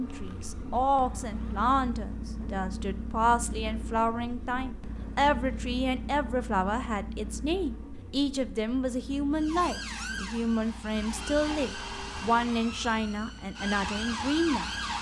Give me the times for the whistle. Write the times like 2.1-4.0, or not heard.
not heard.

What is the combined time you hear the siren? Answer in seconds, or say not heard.
7 s.